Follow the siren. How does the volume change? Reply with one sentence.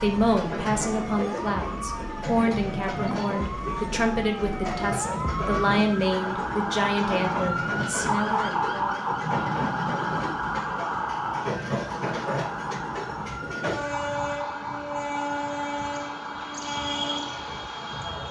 The volume of the siren goes up, then down.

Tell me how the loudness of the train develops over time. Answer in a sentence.
The loudness of the train stays about the same.